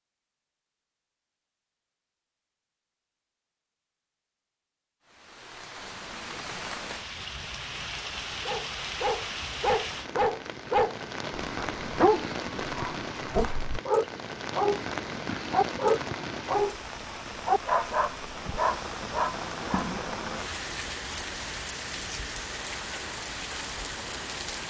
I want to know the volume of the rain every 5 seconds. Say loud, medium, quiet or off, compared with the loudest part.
off, loud, loud, loud, loud.